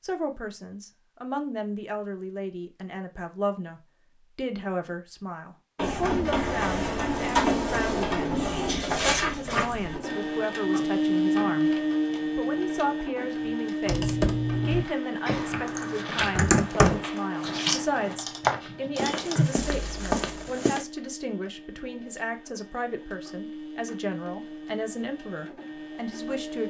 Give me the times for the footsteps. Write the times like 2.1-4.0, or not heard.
14.5-20.9.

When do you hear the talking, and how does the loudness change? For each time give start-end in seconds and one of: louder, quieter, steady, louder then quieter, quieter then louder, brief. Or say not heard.
0.0-26.6 steady.